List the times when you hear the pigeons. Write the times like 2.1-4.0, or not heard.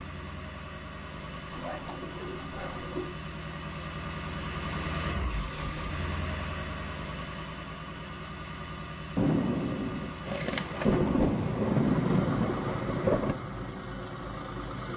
1.5-3.1.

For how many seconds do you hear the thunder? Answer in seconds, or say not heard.
4 s.